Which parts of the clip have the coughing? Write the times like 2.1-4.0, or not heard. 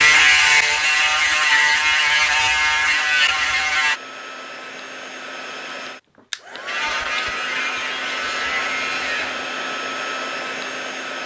not heard.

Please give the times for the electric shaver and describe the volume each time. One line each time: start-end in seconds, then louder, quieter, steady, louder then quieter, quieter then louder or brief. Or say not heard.
0.0-4.0 steady
6.7-9.4 brief.